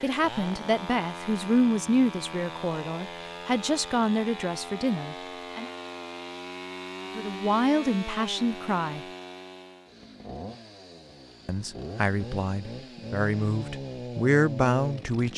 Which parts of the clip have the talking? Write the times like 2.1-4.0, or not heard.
0.0-5.7, 7.2-9.0, 11.4-15.3.